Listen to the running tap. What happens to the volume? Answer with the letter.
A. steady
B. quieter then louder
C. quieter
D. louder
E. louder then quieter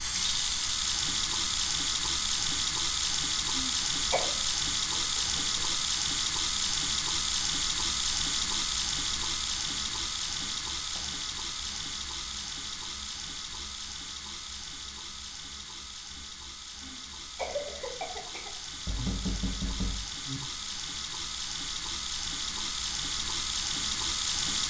B.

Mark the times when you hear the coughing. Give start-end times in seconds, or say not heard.
3.5-4.3, 16.8-18.5.